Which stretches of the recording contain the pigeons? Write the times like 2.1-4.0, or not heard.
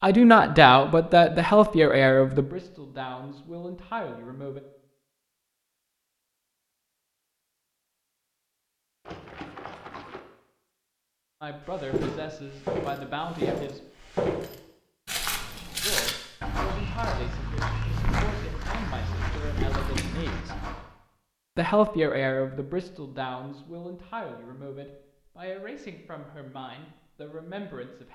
not heard.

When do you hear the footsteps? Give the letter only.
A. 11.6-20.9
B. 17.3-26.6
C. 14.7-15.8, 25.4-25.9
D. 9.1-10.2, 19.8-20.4
A.